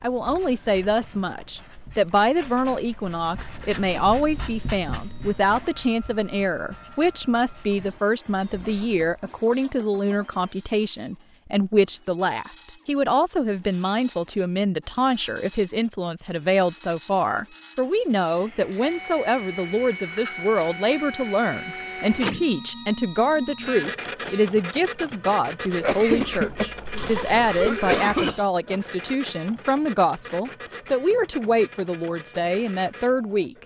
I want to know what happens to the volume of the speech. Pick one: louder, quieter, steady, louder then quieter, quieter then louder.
steady.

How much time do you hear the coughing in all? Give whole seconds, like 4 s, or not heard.
3 s.